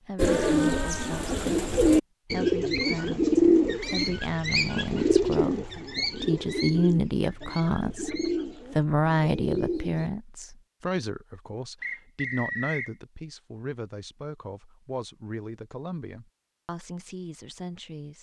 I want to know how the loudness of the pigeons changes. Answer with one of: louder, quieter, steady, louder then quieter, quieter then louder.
quieter.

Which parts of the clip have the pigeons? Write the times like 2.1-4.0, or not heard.
0.1-10.1.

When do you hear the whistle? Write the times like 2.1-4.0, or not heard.
3.8-4.2, 11.8-12.9.